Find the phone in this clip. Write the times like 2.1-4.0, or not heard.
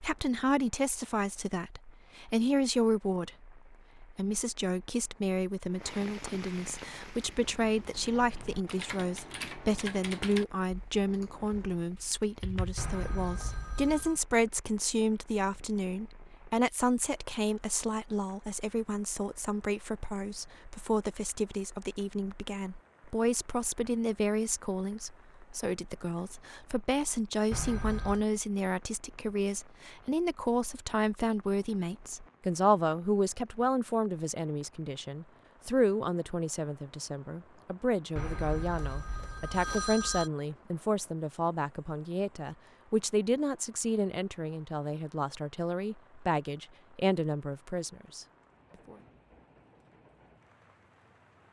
12.8-14.2, 27.5-28.2, 38.1-40.3.